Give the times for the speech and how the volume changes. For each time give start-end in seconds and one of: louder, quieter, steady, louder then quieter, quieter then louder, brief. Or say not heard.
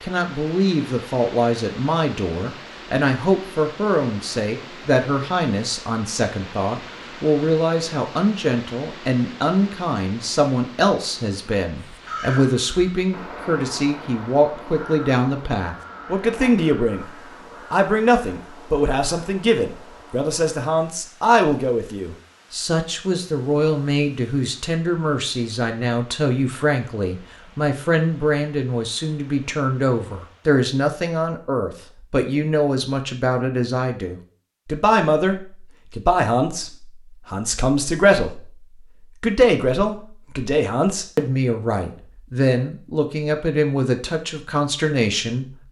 0.0-17.1 steady
17.7-45.5 steady.